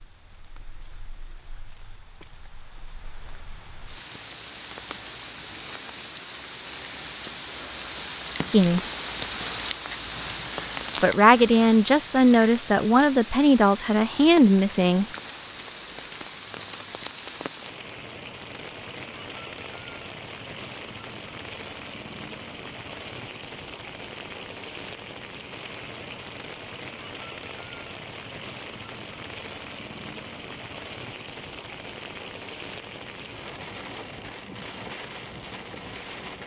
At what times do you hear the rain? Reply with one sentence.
You can hear the rain from 0.0 to 36.4 s.